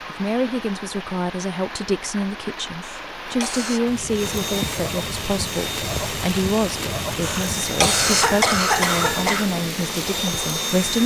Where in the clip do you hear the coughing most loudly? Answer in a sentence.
The loudest moment of the coughing is at 9 seconds.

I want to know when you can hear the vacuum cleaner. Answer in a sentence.
The vacuum cleaner can be heard from 4.1 to 11.0 s.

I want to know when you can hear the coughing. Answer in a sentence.
You can hear the coughing from 2.8 to 3.8 s and from 7.2 to 9.5 s.